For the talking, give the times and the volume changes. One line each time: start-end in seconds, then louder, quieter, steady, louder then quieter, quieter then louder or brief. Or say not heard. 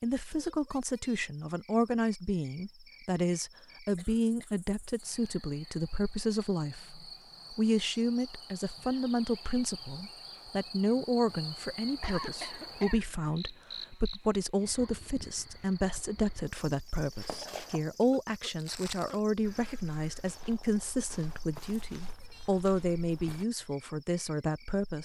0.0-25.0 steady.